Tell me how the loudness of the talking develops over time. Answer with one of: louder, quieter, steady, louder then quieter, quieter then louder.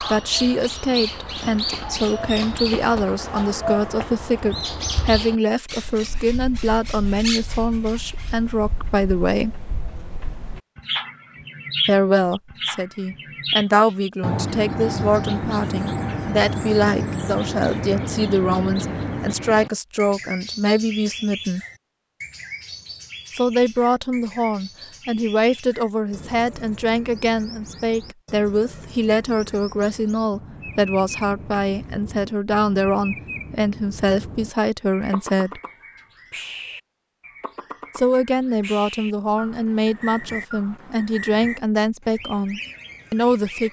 steady.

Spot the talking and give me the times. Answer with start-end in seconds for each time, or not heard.
0.0-9.6, 11.8-21.6, 23.4-35.6, 38.0-43.6.